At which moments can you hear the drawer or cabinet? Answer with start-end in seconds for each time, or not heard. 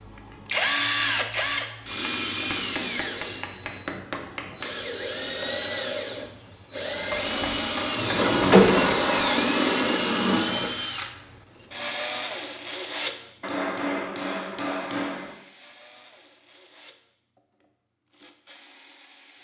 7.1-9.0.